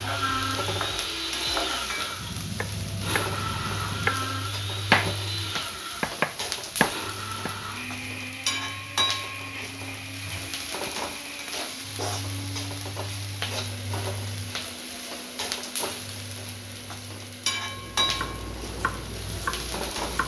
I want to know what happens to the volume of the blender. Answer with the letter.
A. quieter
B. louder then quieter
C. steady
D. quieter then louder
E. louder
A.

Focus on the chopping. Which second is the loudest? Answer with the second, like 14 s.
5 s.